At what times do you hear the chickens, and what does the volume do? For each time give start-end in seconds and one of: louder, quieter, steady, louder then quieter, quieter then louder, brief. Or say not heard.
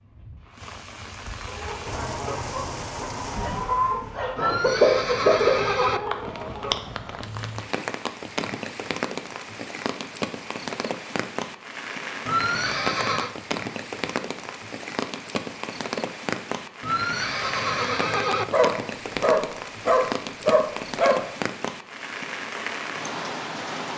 1.4-6.8 louder then quieter.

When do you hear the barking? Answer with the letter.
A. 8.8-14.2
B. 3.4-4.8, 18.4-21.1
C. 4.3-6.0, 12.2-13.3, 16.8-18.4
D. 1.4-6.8
B.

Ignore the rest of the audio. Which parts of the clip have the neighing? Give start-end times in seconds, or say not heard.
4.3-6.0, 12.2-13.3, 16.8-18.4.